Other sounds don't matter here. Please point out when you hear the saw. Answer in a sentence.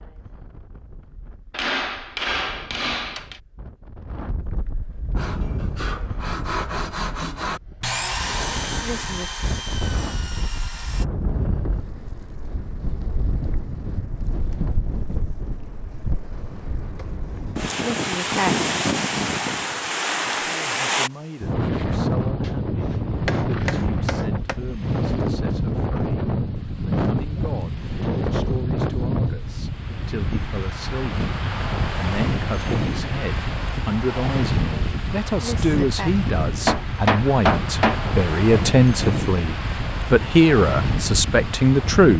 You can hear the saw from 5.2 to 11.1 s.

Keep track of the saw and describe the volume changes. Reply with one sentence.
The loudness of the saw goes up, then down.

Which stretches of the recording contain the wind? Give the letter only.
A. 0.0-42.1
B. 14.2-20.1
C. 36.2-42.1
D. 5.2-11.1
A.